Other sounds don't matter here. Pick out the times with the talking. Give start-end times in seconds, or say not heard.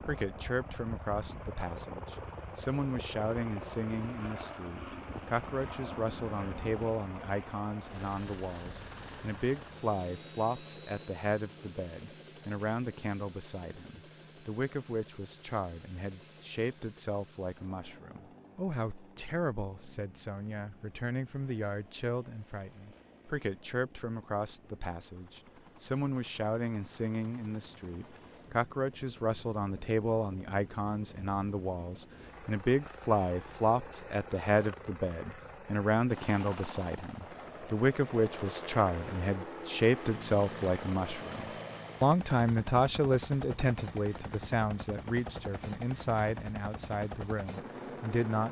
0.0-48.4.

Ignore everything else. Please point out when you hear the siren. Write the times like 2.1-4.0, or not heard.
not heard.